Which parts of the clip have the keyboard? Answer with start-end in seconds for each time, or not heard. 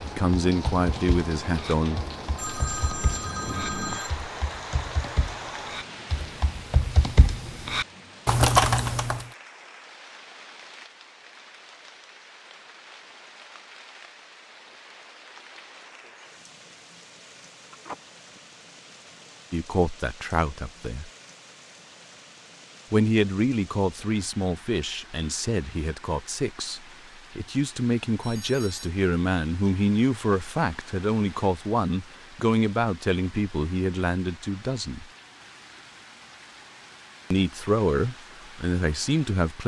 0.1-9.2.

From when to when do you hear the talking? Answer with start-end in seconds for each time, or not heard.
0.0-2.0, 19.5-21.1, 22.9-35.0, 37.3-39.6.